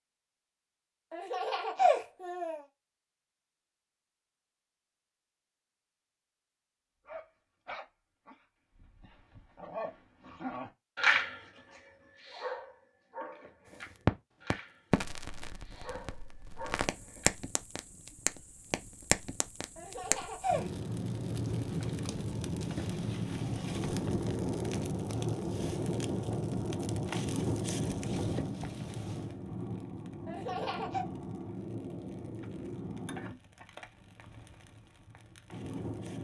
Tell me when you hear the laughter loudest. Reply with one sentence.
The loudest moment of the laughter is at 2 seconds.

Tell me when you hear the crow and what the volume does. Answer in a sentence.
You can't hear the crow here.